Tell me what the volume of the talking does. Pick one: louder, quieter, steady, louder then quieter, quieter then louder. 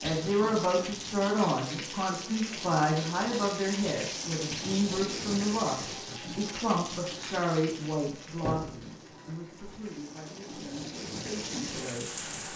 quieter.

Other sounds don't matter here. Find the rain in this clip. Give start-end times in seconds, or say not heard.
0.0-12.5.